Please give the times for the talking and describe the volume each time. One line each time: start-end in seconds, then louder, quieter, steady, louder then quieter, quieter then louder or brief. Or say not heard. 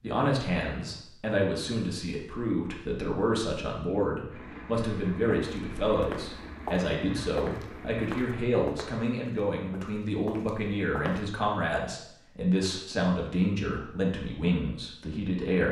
0.0-15.6 steady.